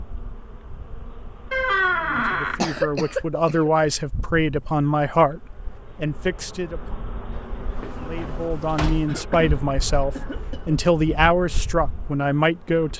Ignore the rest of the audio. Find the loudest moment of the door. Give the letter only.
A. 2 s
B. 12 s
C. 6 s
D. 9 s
A.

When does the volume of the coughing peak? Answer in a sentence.
The volume of the coughing peaks at 3 seconds.